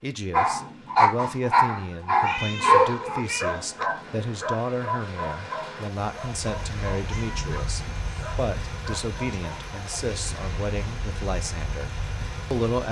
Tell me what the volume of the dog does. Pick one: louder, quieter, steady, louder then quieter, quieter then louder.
quieter.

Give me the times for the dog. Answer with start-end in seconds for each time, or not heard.
0.3-9.8.